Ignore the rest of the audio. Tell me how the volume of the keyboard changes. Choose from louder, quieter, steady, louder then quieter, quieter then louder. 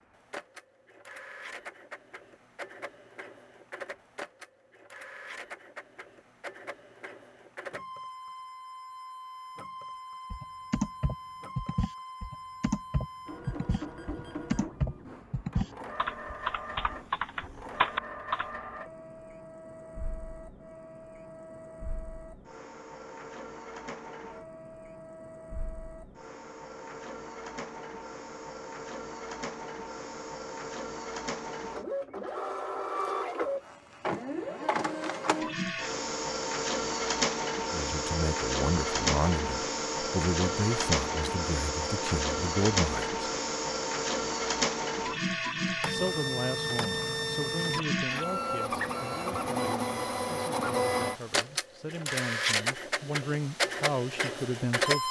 steady.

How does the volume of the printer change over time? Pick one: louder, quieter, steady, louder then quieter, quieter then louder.
louder.